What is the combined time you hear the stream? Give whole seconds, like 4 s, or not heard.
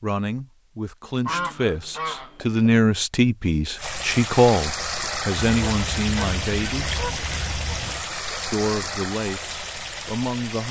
7 s.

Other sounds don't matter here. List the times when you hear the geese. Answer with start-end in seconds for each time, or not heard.
1.2-2.6, 5.3-8.1.